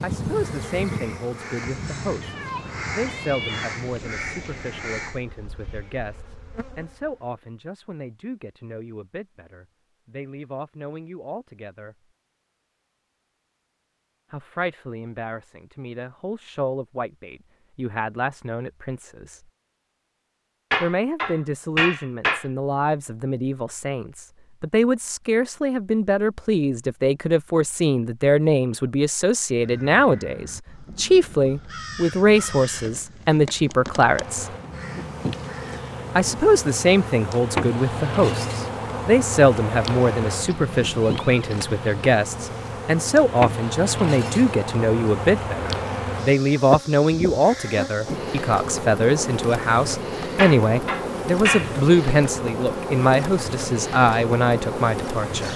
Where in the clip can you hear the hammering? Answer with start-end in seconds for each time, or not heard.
20.7-22.4, 50.4-51.7.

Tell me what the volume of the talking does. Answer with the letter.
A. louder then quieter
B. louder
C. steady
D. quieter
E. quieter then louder
B.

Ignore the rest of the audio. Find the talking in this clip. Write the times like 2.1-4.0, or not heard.
0.0-11.9, 14.3-19.4, 20.8-34.5, 36.1-55.5.